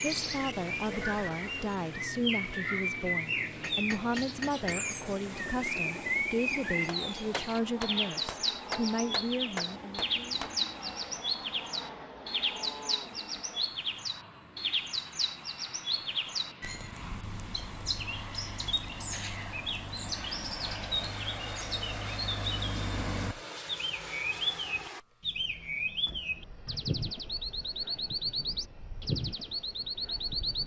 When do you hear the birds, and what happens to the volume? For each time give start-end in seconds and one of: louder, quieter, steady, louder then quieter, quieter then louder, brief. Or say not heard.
0.0-30.6 steady.